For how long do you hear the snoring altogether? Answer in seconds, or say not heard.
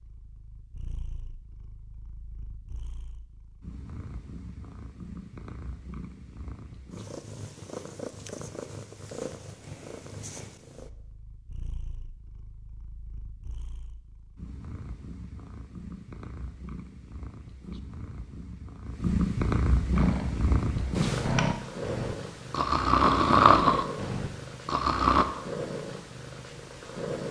5 s.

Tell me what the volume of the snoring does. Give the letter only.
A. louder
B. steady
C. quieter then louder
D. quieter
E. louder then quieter
E.